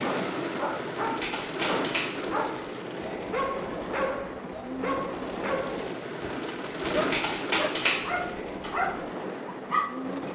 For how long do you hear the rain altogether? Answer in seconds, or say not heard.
10 s.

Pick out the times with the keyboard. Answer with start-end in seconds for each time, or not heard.
1.0-2.8, 6.9-8.7.